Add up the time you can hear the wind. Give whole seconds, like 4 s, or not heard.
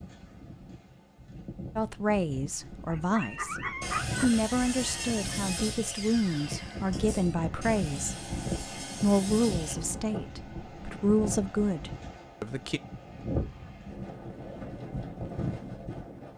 16 s.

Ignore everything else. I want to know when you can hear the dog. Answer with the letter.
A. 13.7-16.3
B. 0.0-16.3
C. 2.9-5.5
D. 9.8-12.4
C.